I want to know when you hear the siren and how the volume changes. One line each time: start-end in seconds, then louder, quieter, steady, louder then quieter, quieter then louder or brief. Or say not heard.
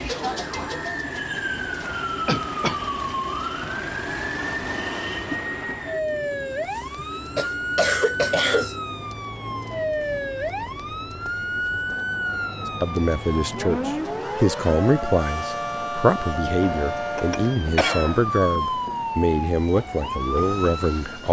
0.0-21.2 steady.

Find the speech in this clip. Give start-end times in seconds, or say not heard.
12.8-21.2.